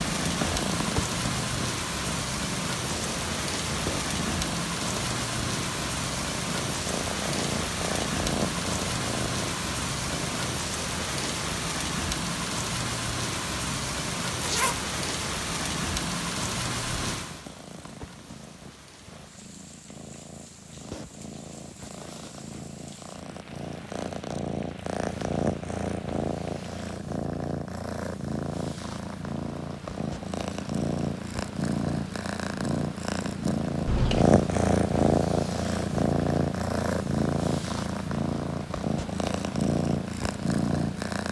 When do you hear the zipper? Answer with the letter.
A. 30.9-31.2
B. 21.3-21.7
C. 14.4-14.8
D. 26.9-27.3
C.